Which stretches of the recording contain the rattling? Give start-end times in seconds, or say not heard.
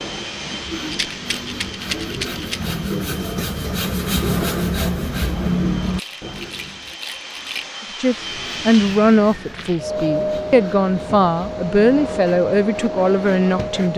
0.9-2.8, 5.8-7.7, 9.4-9.9.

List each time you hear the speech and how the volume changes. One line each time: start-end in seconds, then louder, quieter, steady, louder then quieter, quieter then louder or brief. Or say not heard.
8.0-13.9 quieter then louder.